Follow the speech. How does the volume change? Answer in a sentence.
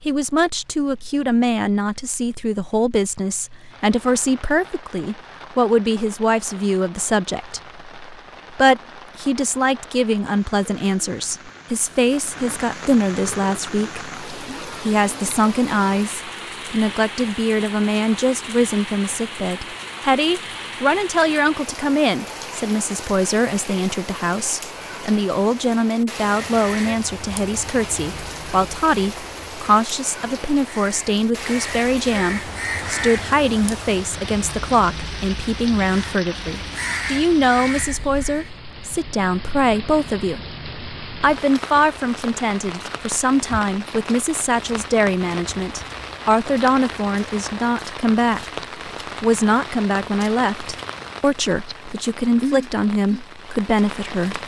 The loudness of the speech stays about the same.